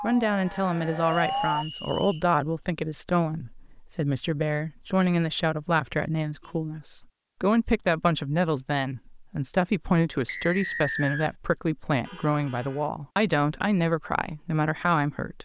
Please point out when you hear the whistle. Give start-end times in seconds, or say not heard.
1.1-2.2, 10.2-11.3.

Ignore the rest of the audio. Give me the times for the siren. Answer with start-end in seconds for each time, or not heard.
0.0-1.6.